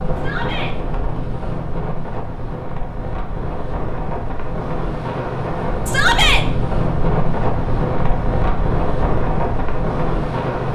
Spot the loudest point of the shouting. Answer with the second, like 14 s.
6 s.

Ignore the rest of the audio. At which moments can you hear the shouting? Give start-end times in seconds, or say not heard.
0.1-0.8, 5.8-6.5.